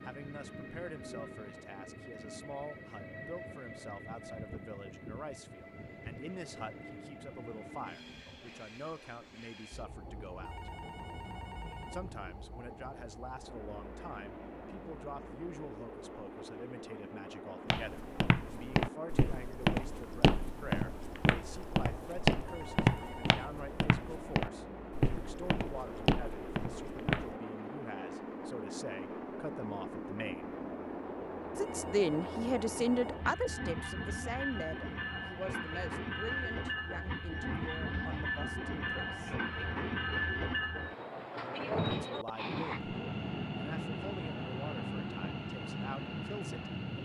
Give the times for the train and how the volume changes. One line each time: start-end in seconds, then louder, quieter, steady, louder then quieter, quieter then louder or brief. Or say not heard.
0.0-47.0 louder.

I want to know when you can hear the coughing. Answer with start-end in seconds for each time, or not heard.
not heard.